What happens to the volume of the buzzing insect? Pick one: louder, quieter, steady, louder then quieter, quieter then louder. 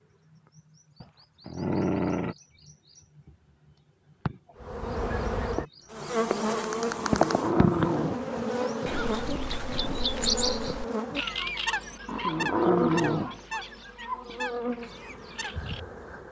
quieter.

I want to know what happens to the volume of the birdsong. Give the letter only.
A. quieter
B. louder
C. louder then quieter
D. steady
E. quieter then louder
C.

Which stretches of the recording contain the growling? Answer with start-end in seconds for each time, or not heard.
1.0-2.4, 7.0-8.4, 12.1-13.4.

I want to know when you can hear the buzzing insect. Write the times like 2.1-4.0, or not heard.
4.6-16.2.